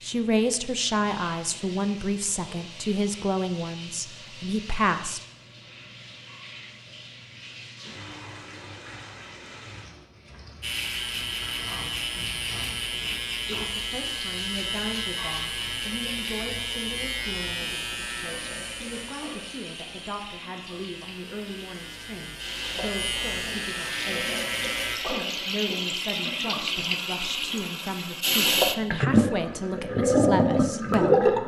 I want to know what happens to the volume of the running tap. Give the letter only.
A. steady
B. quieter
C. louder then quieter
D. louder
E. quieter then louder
D.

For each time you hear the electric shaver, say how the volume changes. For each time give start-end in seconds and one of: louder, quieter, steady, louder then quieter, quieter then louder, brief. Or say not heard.
10.6-25.0 quieter then louder.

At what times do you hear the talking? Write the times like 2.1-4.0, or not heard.
0.0-5.2, 13.4-31.2.